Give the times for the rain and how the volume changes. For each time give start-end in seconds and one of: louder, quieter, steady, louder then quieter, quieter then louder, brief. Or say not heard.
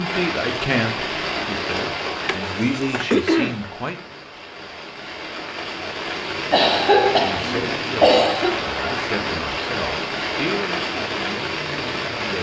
0.0-12.3 quieter then louder.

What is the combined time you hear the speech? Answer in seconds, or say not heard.
9 s.